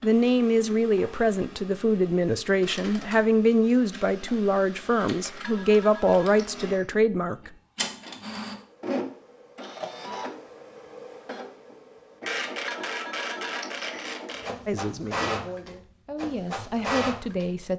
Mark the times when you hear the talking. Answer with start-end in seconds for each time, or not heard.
0.0-7.5, 14.7-17.7.